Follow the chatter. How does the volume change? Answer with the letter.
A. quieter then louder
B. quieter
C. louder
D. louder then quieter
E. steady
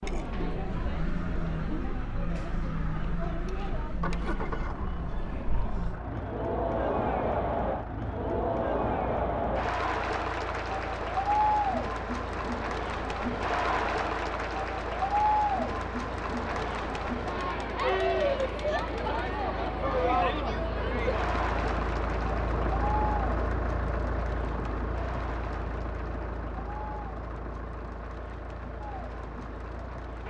D.